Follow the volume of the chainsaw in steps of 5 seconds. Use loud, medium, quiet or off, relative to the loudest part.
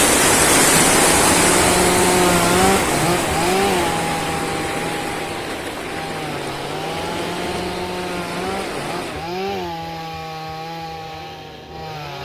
loud, medium, medium.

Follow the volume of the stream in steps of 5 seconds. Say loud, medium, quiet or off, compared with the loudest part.
loud, medium, off.